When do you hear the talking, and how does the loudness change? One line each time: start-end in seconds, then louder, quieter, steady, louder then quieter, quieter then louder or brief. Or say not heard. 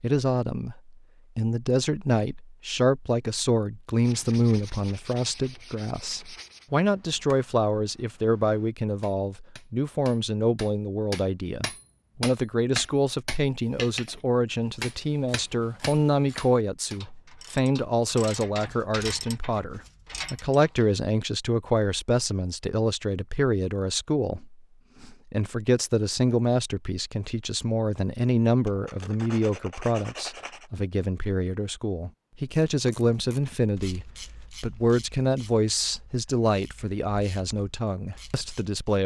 0.0-39.0 steady.